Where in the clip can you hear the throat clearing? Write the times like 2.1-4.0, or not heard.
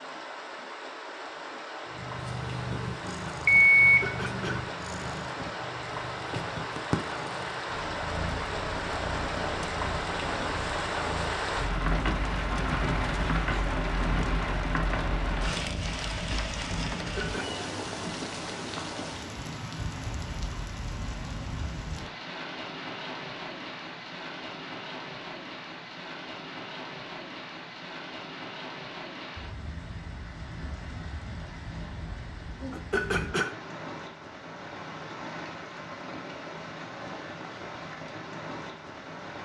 3.8-4.7, 16.9-17.6, 32.7-33.5.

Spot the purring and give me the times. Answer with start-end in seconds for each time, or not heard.
1.9-16.0.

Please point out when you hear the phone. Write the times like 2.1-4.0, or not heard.
3.5-4.0.